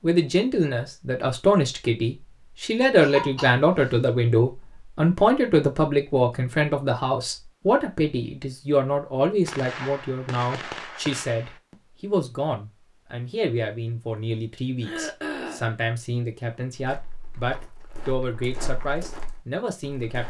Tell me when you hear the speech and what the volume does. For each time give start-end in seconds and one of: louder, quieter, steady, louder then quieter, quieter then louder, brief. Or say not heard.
0.0-20.2 quieter.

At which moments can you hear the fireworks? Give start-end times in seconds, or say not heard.
9.4-11.6.